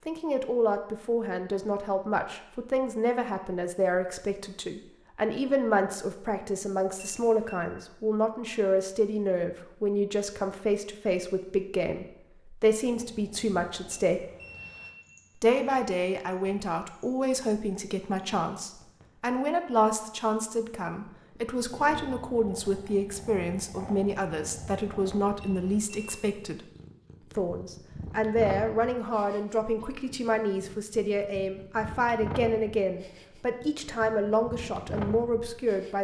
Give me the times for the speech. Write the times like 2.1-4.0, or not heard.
0.1-14.2, 15.4-26.6, 27.4-35.9.